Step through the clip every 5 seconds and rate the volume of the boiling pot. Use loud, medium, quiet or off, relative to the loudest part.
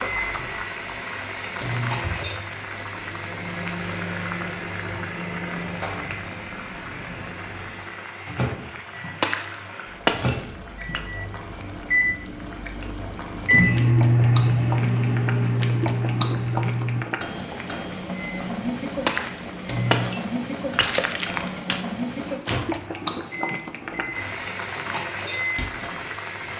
loud, medium, medium, loud, loud, loud.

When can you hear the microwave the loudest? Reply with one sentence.
The volume of the microwave peaks at 14 seconds.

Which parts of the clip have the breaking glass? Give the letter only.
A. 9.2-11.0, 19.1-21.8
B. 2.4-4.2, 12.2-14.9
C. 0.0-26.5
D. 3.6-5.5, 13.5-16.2
A.